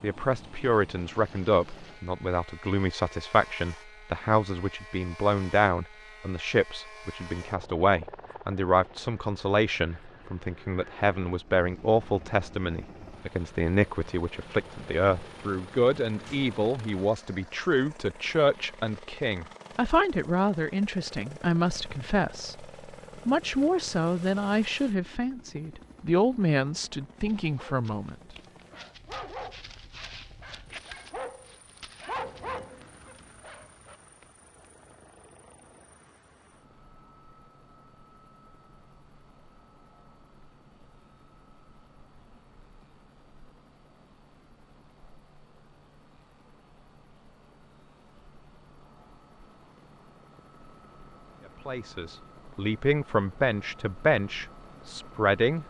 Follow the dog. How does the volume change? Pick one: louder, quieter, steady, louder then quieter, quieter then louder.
louder then quieter.